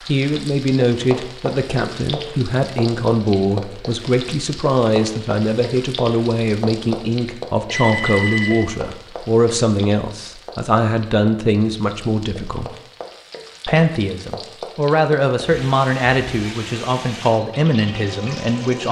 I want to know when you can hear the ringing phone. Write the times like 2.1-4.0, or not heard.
7.7-8.7.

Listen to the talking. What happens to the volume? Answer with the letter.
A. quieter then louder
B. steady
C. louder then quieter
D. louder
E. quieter
B.